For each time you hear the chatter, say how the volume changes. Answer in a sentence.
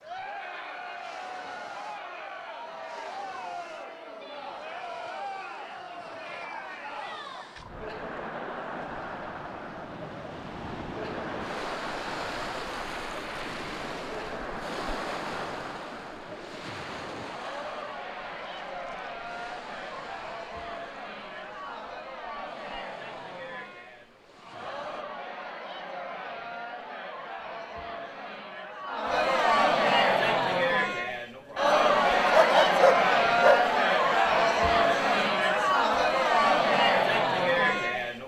You can hear the chatter from 0.0 to 38.2 s, getting louder.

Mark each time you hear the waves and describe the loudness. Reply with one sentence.
The waves can be heard from 0.0 to 25.1 s, getting louder then quieter.